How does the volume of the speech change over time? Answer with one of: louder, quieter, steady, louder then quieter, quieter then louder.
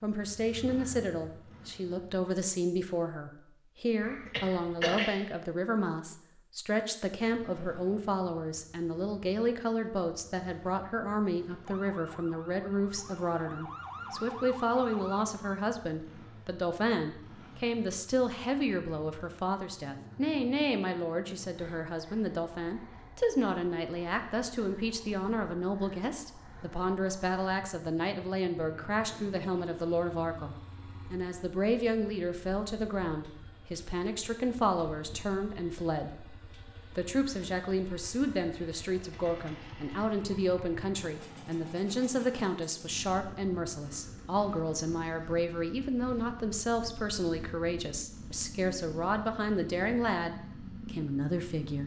steady.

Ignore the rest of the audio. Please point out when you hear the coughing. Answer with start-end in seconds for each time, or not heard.
4.0-5.2.